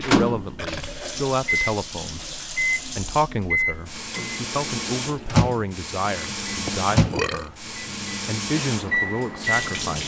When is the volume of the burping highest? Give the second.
7 s.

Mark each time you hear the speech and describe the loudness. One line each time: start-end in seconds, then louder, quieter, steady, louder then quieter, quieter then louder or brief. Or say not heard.
0.0-10.0 steady.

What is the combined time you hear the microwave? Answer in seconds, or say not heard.
10 s.